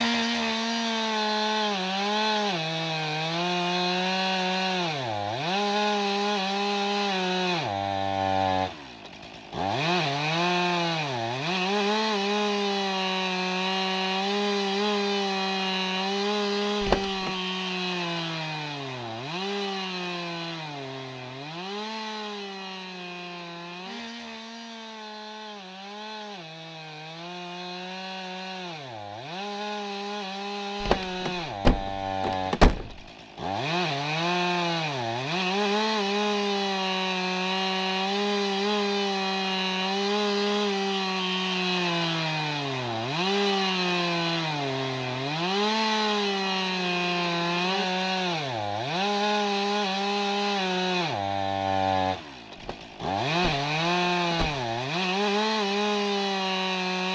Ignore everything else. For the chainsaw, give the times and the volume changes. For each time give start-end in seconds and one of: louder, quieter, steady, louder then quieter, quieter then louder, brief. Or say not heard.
0.0-57.1 quieter then louder.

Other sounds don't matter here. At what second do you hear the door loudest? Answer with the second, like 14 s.
33 s.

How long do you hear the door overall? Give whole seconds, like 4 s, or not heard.
5 s.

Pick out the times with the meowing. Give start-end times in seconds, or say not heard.
not heard.